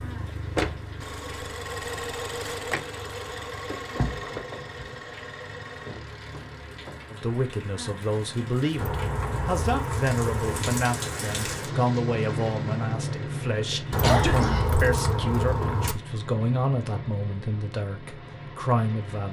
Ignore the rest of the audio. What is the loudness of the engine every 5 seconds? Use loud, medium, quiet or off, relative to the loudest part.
loud, medium, off, off.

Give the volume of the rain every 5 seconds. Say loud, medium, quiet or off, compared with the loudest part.
quiet, medium, loud, medium.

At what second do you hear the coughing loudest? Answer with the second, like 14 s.
14 s.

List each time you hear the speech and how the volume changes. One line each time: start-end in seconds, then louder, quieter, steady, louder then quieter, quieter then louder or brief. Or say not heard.
7.1-19.2 steady.